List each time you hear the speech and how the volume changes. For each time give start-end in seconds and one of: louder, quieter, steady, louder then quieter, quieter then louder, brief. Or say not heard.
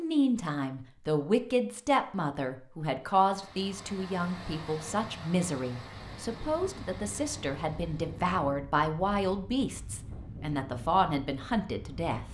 0.0-12.2 steady.